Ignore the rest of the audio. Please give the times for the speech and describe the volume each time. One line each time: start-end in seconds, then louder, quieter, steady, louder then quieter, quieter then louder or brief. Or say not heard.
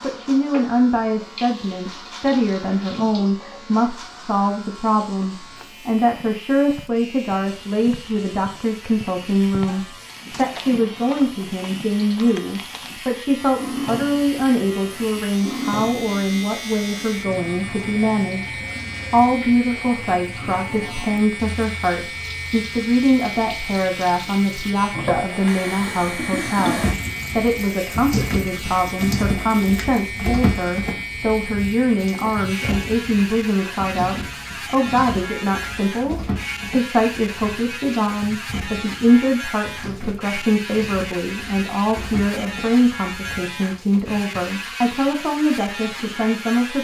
0.0-46.7 steady.